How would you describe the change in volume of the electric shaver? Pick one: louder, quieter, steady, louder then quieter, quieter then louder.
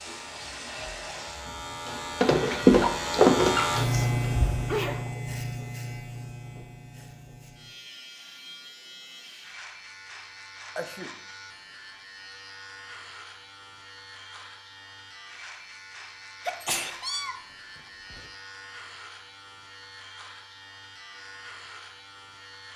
quieter.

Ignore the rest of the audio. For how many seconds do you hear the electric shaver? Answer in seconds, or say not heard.
23 s.